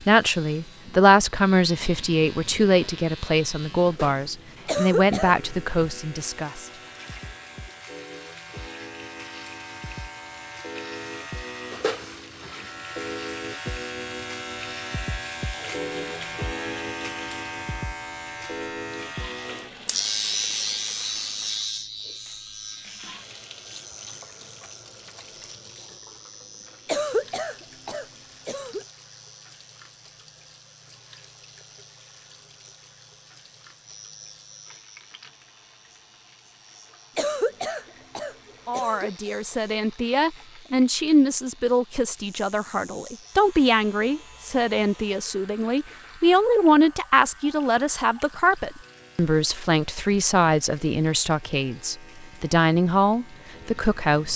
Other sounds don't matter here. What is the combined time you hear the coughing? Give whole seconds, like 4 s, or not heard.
5 s.